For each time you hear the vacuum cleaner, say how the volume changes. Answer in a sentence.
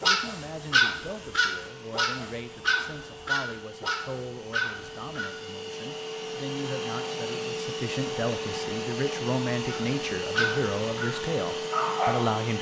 You can hear the vacuum cleaner from 0.0 to 12.5 s, getting louder.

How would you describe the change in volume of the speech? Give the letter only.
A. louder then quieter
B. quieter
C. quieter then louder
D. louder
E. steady
D.